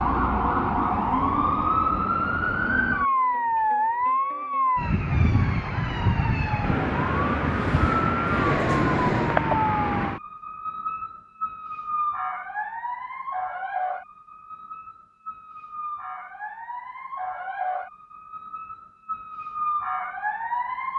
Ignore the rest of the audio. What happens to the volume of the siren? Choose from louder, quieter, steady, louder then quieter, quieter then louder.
quieter.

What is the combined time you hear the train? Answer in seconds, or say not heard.
2 s.